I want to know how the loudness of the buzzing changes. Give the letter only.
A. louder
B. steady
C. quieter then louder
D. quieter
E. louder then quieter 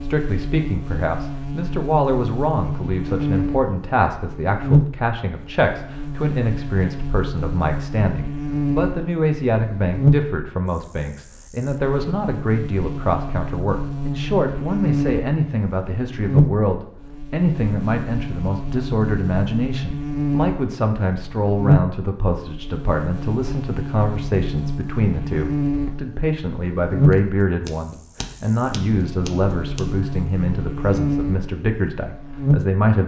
B.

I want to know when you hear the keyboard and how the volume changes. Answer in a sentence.
You can't hear the keyboard here.